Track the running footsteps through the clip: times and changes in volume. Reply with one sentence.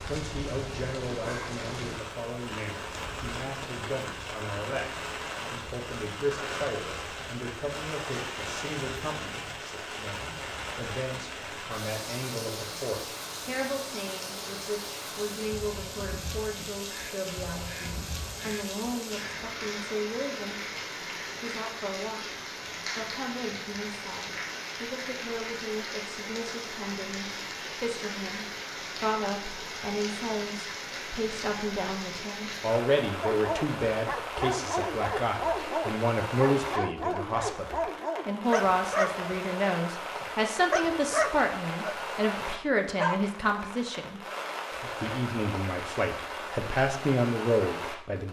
You can't hear the running footsteps here.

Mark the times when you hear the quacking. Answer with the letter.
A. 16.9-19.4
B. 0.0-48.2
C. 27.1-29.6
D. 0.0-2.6
A.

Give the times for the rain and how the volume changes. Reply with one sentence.
You can hear the rain from 0.0 to 48.2 s, at a steady volume.